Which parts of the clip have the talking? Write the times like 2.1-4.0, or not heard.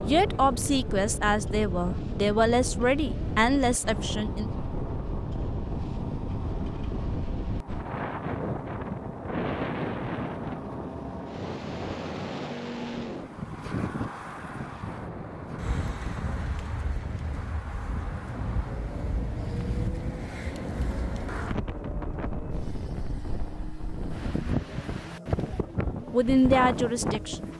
0.0-4.5, 26.1-27.5.